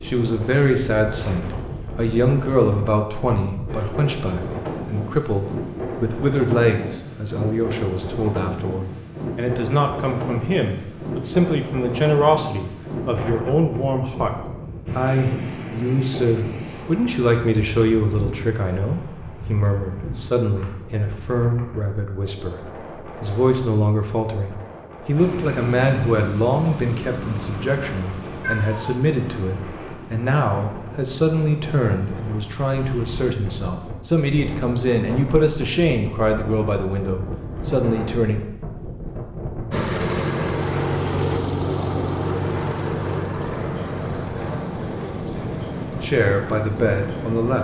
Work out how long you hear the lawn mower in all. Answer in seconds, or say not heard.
16 s.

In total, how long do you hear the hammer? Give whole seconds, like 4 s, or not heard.
not heard.